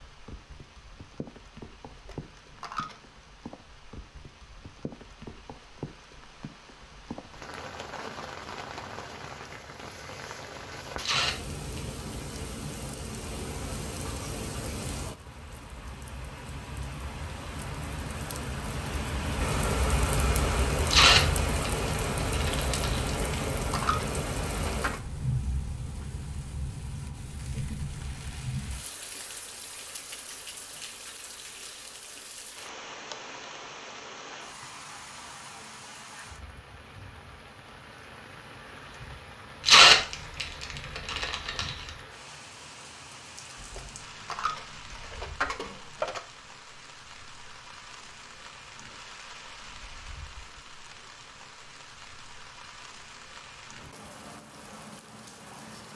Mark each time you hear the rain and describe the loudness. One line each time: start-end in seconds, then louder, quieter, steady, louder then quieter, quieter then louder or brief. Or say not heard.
0.0-55.9 louder then quieter.